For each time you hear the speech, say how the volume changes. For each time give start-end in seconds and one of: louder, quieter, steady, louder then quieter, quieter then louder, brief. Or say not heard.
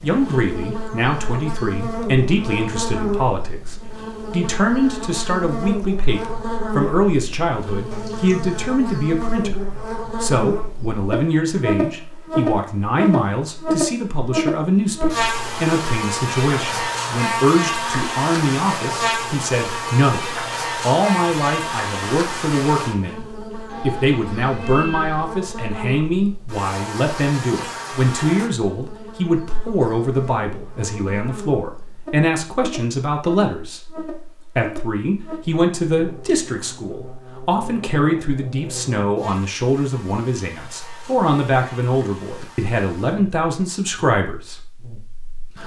0.0-45.6 steady.